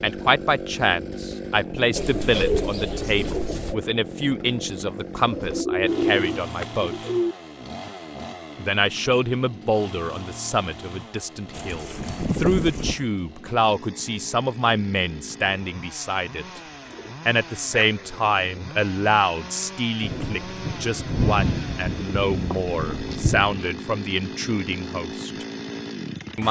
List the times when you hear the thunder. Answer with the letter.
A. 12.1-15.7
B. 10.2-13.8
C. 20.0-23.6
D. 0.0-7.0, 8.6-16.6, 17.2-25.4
C.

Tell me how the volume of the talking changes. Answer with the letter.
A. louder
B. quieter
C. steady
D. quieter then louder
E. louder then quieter
C.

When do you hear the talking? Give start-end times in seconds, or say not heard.
0.0-7.0, 8.6-16.6, 17.2-25.4.